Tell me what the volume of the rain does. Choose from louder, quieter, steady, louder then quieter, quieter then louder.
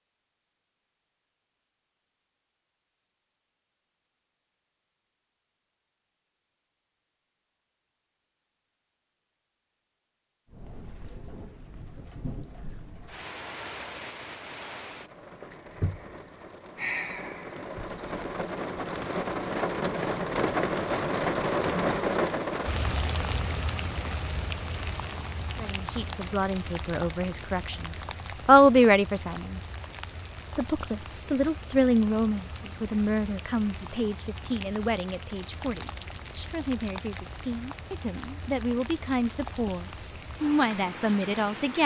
louder then quieter.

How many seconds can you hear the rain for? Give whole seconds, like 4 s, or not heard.
31 s.